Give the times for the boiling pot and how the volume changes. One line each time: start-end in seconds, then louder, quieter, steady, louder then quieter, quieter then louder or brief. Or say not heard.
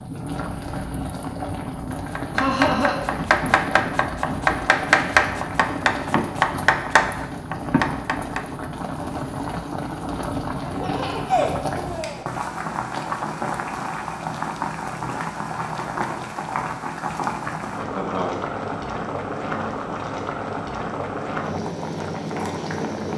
0.0-23.1 steady.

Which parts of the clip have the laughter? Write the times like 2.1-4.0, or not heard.
2.4-3.0, 10.6-12.2, 17.9-18.4.